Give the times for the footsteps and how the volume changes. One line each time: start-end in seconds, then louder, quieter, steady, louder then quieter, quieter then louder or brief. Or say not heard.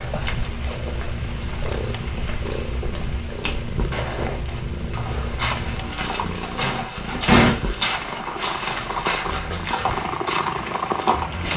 0.1-11.5 louder.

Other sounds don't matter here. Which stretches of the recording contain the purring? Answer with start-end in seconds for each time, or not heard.
0.0-11.5.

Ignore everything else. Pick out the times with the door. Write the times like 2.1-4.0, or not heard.
6.6-7.6.